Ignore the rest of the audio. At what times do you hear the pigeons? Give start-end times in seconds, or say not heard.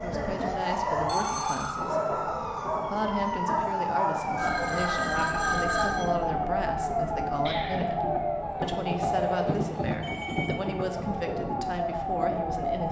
7.5-9.4.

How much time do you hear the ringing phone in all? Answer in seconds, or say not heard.
3 s.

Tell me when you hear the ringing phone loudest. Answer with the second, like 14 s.
6 s.